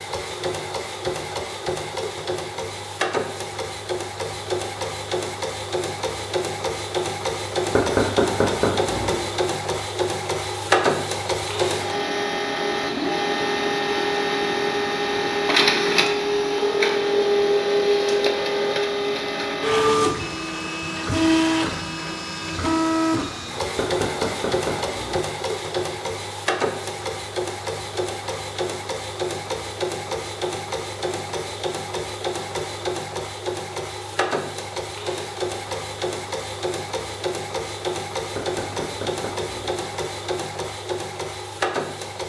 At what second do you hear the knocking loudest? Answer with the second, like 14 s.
8 s.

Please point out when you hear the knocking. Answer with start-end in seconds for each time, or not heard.
7.7-9.2, 23.8-25.2, 38.3-39.8.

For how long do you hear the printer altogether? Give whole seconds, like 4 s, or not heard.
42 s.